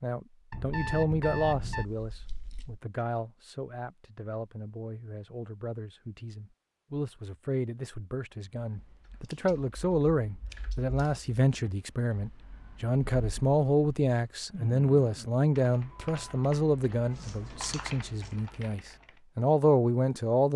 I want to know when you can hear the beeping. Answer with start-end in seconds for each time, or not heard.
0.5-1.9.